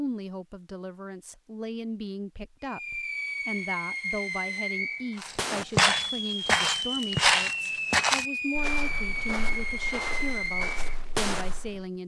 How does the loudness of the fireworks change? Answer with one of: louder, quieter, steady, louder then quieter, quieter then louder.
steady.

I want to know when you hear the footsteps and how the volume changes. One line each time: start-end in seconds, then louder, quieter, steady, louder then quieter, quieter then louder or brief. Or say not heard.
5.2-11.8 quieter.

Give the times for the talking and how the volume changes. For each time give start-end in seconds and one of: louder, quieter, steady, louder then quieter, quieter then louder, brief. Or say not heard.
0.0-12.0 steady.